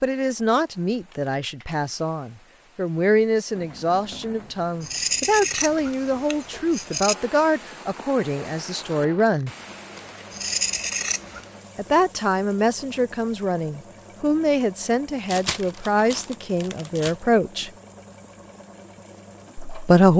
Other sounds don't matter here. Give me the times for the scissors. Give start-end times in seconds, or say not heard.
4.8-7.2, 10.3-11.4.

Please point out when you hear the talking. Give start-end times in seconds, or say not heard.
0.0-9.5, 11.8-17.7, 19.6-20.1.